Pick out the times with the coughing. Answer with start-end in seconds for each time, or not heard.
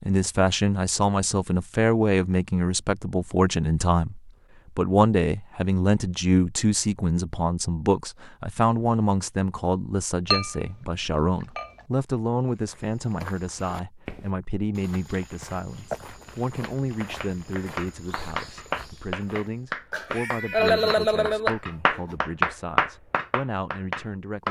19.9-22.1.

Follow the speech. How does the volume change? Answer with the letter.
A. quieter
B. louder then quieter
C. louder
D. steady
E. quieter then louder
A.